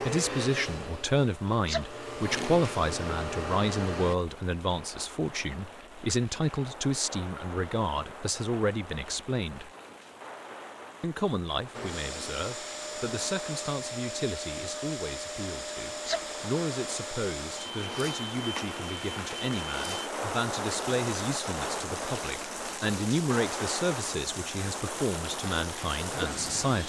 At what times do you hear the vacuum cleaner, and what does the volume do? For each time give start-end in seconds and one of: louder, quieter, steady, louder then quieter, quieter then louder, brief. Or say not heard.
0.0-4.2 quieter then louder
11.7-20.1 steady.